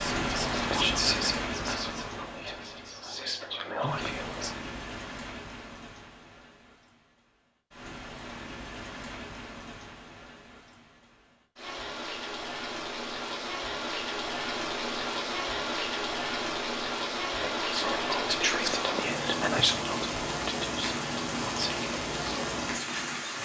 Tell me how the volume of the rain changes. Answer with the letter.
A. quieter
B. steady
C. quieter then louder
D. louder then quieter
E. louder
C.